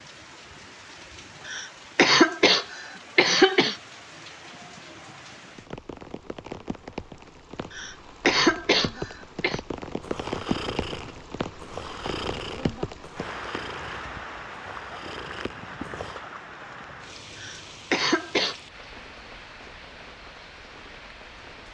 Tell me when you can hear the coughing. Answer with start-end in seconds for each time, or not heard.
1.4-3.8, 7.7-9.6, 17.4-18.6.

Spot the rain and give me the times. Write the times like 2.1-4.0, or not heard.
0.0-21.6.